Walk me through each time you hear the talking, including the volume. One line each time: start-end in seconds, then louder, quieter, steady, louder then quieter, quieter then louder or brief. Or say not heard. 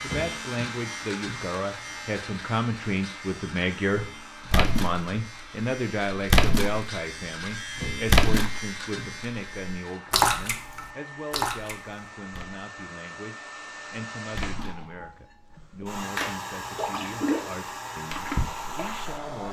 0.0-19.4 quieter.